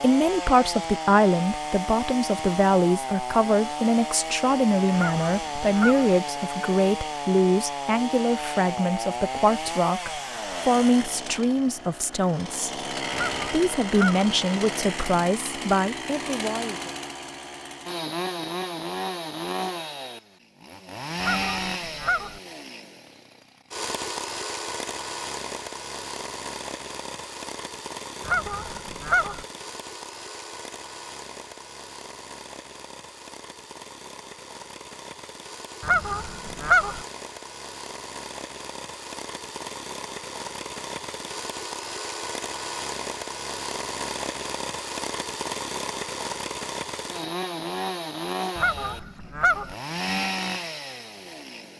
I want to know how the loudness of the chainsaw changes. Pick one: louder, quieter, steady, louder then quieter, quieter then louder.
quieter then louder.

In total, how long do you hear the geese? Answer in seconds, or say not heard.
7 s.